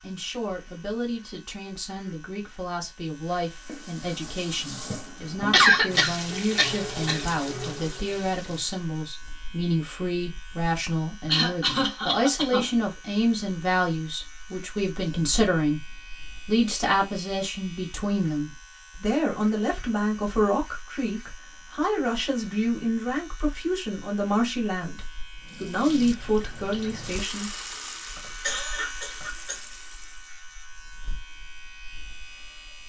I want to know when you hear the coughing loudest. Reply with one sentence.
The volume of the coughing peaks at 6 seconds.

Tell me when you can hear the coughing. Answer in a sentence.
The coughing can be heard from 5.5 to 7.2 s, from 11.2 to 12.7 s and from 28.1 to 29.6 s.